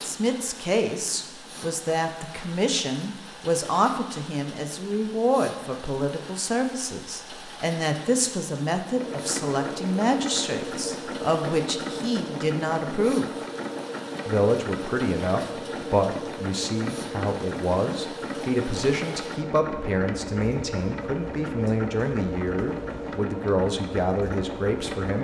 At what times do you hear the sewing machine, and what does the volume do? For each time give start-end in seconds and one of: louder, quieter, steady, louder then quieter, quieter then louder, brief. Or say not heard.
8.9-25.1 steady.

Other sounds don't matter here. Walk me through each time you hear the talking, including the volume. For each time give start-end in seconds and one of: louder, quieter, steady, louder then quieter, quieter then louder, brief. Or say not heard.
0.0-13.3 steady
14.2-25.1 steady.